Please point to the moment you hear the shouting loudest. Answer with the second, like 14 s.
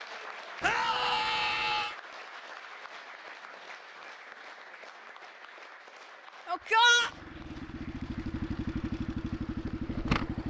7 s.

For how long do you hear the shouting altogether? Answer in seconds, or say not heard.
2 s.